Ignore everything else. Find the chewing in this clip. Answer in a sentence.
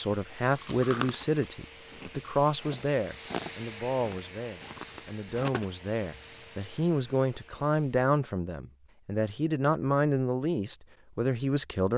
You can hear the chewing from 0.6 to 5.7 s.